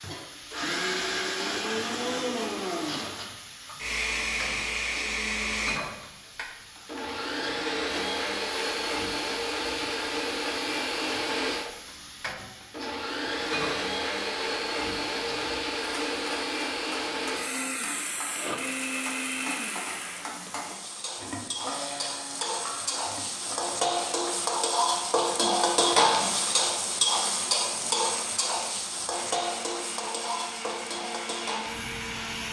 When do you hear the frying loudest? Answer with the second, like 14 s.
26 s.